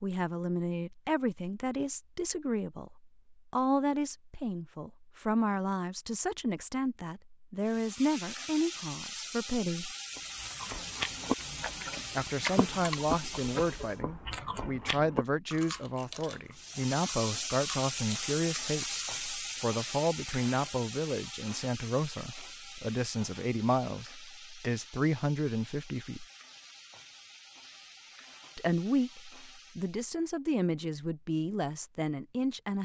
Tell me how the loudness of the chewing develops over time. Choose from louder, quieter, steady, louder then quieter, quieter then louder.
quieter.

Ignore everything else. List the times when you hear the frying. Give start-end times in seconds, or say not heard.
7.6-14.0, 16.5-30.1.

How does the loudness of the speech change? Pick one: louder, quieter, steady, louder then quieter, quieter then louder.
steady.